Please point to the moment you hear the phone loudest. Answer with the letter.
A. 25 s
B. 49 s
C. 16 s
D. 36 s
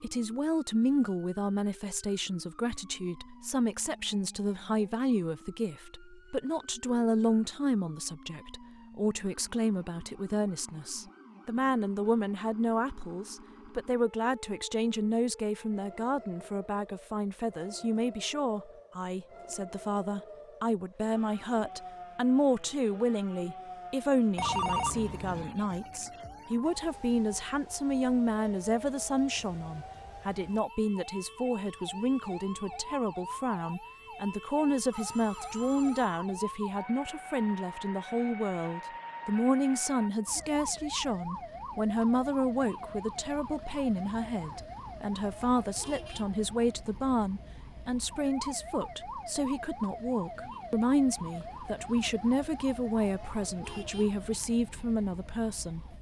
A.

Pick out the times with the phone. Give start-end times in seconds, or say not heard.
24.4-25.5, 34.9-36.2.